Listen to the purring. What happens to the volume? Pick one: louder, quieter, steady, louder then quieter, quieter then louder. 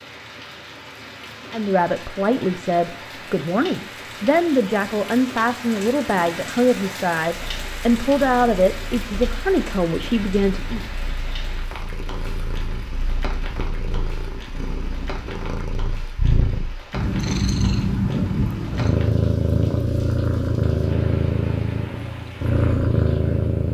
louder.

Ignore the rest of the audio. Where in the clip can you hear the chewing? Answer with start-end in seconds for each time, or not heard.
not heard.